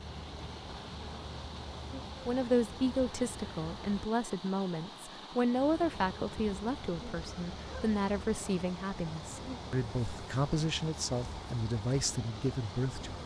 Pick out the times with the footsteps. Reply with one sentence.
The footsteps can't be heard in this clip.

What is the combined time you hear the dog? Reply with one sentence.
You can't hear the dog here.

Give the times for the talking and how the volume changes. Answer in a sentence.
The talking can be heard from 2.2 to 13.2 s, at a steady volume.